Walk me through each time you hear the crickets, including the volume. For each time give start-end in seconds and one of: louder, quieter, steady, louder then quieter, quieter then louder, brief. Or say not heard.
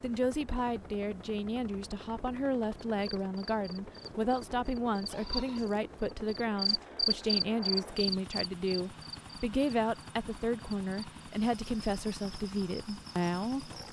3.0-13.8 louder then quieter.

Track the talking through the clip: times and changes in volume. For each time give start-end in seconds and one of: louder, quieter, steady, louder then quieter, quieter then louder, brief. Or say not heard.
0.0-13.7 steady.